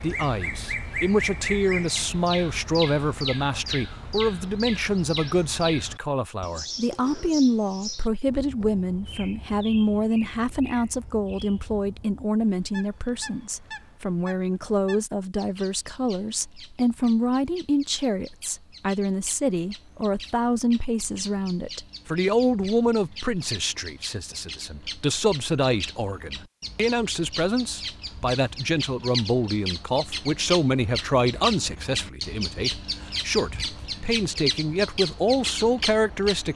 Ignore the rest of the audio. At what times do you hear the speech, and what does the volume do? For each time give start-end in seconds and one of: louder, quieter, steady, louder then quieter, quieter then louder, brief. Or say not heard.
0.0-36.5 steady.